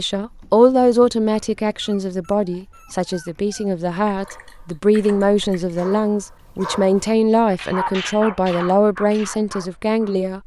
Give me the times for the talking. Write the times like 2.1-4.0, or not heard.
0.0-10.4.